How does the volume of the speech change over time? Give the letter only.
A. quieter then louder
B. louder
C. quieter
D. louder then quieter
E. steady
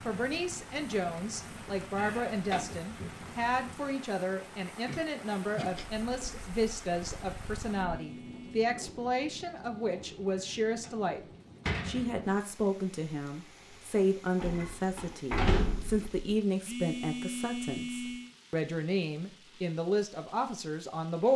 E.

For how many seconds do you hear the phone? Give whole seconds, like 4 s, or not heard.
3 s.